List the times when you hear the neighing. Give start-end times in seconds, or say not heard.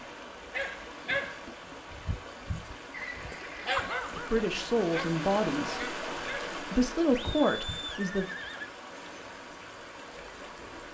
2.9-3.8, 7.1-8.7.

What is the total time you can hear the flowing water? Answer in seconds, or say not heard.
11 s.